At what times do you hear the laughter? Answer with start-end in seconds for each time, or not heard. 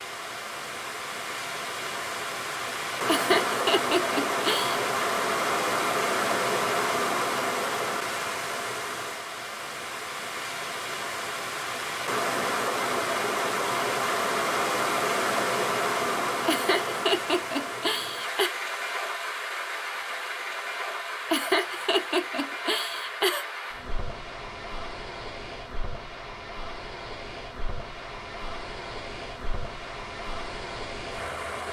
3.0-4.8, 16.4-18.5, 21.3-23.4.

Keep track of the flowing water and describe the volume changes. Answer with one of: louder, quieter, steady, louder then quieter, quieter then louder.
quieter.